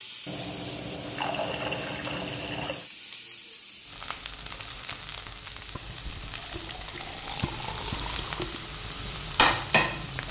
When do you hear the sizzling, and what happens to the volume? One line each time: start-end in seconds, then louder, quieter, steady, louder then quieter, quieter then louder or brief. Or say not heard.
0.0-10.2 louder.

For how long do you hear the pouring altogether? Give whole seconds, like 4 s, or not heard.
5 s.